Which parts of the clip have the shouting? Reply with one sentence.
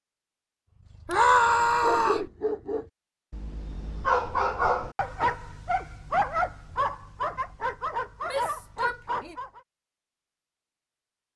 You can hear the shouting from 1.1 to 2.2 s and from 8.2 to 9.3 s.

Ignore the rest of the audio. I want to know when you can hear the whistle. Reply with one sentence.
The whistle can't be heard in this clip.